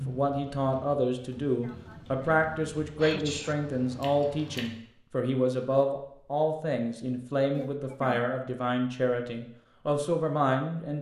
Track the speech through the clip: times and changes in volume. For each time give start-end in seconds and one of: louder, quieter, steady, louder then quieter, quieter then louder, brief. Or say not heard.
0.0-10.9 steady.